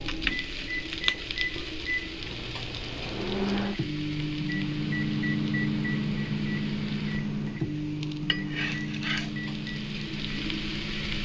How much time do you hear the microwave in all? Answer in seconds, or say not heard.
11 s.